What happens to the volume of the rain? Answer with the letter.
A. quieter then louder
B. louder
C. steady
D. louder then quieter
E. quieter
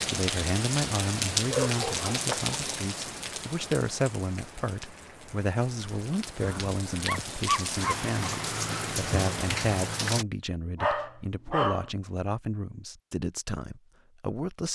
A.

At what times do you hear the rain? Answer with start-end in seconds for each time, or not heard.
0.0-10.2.